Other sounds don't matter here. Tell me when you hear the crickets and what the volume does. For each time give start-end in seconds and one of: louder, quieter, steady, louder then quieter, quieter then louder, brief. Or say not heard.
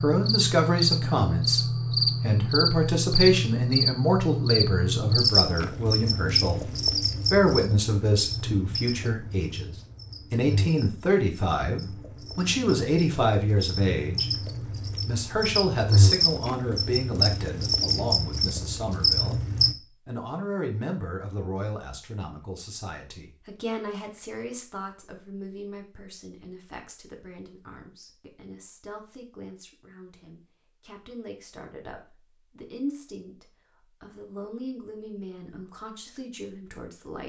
0.0-19.8 quieter then louder.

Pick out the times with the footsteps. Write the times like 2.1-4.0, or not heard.
not heard.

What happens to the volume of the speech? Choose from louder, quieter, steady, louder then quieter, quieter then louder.
quieter.